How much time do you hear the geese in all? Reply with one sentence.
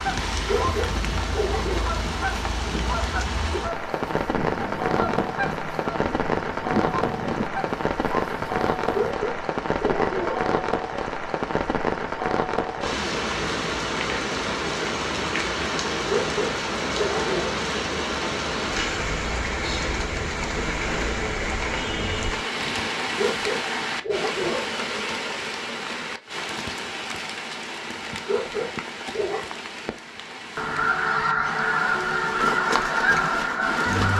You can hear the geese for 13 seconds altogether.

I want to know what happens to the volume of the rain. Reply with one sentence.
The loudness of the rain goes down.